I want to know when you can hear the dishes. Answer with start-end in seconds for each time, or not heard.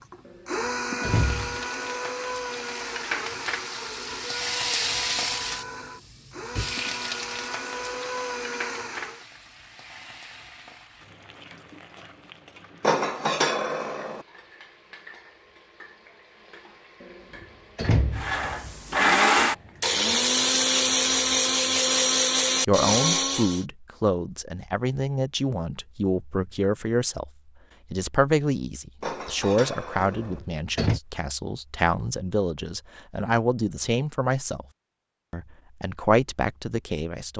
12.8-14.2, 29.0-30.4.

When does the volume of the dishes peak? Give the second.
13 s.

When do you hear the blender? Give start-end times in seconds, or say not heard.
0.0-9.2, 18.1-23.6.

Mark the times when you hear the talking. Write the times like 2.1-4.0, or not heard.
22.6-27.3, 27.9-34.6, 35.3-37.3.